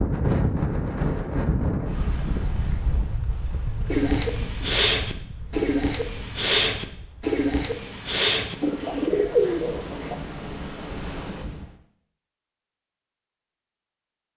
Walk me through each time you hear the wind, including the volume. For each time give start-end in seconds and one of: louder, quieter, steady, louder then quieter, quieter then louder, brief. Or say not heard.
0.0-11.8 quieter then louder.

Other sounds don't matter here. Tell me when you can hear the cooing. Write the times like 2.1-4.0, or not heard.
3.9-10.2.